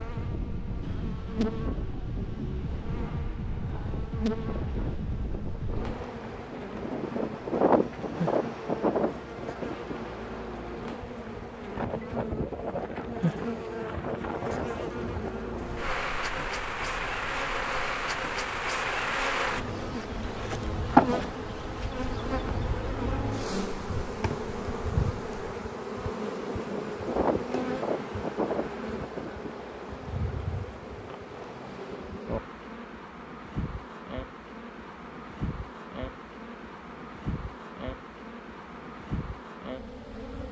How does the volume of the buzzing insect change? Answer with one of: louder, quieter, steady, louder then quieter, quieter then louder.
louder then quieter.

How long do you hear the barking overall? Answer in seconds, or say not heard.
not heard.